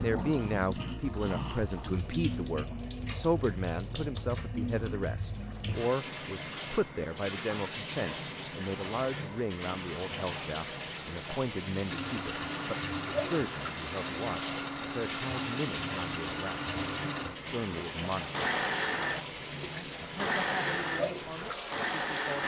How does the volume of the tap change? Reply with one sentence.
The volume of the tap stays about the same.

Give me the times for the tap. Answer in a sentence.
You can hear the tap from 0.0 to 22.4 s.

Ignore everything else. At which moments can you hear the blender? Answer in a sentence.
You can hear the blender from 11.8 to 22.4 s.